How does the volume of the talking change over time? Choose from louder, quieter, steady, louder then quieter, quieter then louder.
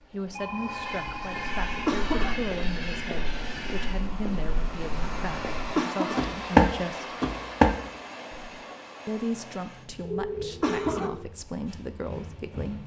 steady.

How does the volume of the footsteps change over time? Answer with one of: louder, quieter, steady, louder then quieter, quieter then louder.
louder.